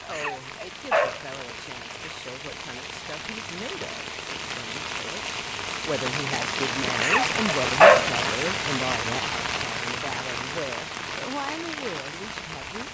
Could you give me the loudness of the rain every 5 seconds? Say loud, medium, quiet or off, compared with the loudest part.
medium, loud, medium.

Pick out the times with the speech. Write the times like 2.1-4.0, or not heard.
0.0-12.8.